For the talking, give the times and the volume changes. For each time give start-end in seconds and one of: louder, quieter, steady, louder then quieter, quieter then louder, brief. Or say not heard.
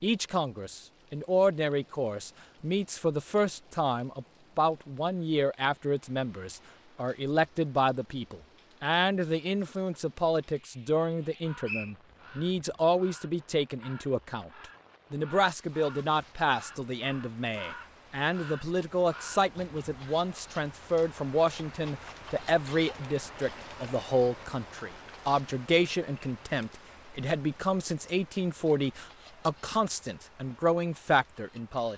0.0-14.5 steady
15.1-31.9 steady.